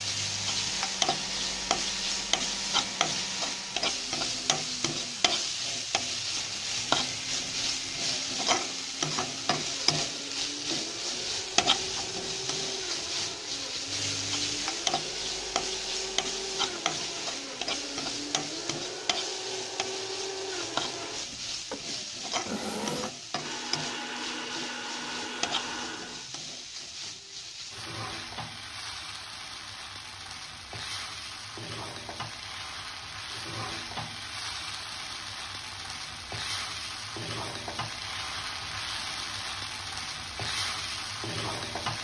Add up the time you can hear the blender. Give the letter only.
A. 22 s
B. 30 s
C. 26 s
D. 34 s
C.